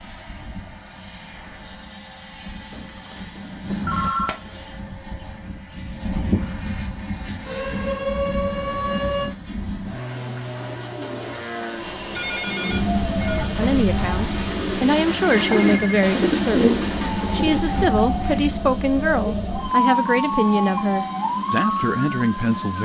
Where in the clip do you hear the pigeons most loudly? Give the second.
17 s.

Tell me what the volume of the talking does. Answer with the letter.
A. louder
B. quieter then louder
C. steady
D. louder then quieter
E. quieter
C.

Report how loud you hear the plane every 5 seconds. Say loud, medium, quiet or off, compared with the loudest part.
medium, loud, loud, loud, loud.